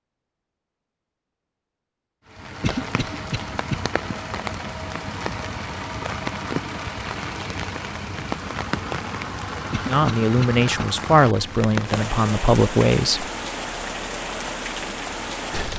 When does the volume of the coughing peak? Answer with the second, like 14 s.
3 s.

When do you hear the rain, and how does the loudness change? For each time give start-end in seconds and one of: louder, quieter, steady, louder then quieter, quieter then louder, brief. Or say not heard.
2.2-15.7 steady.